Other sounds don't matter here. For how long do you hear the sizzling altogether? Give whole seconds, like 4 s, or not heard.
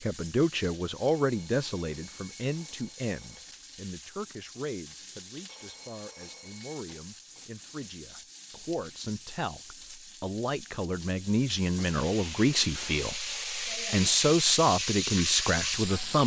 16 s.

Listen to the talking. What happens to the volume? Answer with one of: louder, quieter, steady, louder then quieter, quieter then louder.
quieter then louder.